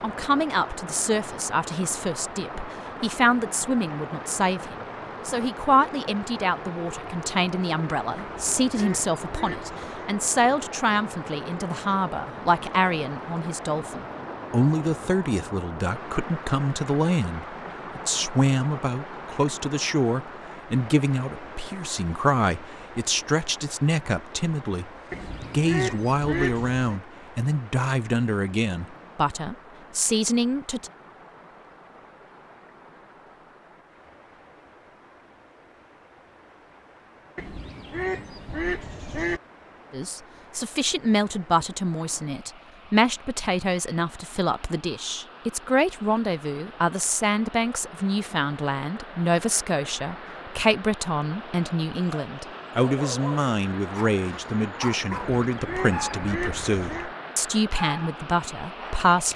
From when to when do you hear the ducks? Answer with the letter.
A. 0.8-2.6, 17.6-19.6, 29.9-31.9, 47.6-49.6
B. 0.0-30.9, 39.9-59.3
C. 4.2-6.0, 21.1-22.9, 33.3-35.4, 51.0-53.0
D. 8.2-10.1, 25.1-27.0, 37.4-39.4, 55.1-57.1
D.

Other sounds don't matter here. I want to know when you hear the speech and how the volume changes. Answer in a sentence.
The speech can be heard from 0.0 to 30.9 s, at a steady volume; and from 39.9 to 59.3 s, at a steady volume.